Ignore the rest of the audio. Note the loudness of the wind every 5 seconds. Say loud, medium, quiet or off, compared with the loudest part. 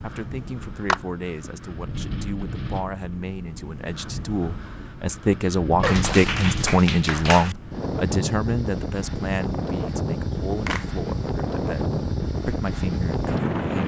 medium, loud, loud.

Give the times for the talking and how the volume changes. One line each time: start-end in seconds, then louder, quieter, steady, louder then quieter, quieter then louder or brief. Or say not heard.
0.0-13.8 louder then quieter.